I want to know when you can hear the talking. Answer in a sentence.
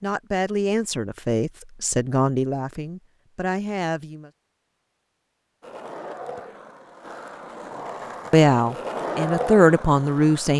The talking can be heard from 0.0 to 4.3 s and from 8.3 to 10.5 s.